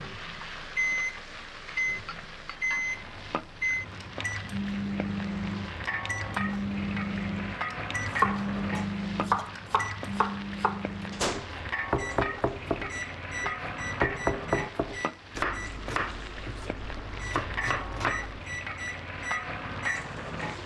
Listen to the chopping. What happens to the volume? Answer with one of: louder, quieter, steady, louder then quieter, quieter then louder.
quieter.